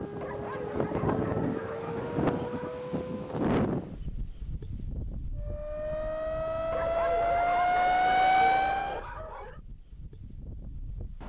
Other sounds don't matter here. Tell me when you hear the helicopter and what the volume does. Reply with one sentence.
You can't hear the helicopter here.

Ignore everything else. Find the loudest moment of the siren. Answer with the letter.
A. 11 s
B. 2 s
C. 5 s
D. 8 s
D.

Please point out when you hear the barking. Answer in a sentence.
You can hear the barking from 0.2 to 2.9 s and from 6.7 to 9.6 s.